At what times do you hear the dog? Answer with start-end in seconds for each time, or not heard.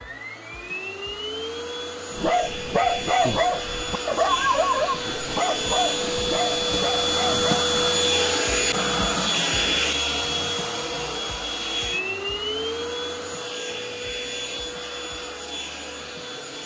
2.1-7.7.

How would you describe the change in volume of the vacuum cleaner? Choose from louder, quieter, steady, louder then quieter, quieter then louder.
louder then quieter.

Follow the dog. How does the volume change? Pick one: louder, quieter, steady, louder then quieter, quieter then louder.
quieter.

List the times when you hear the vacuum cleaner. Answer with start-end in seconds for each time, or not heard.
0.0-16.6.